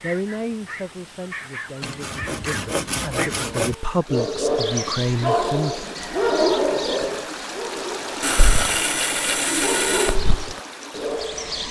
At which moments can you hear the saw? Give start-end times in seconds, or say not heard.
1.8-3.8, 8.2-10.2.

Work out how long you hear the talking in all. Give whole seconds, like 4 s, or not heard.
6 s.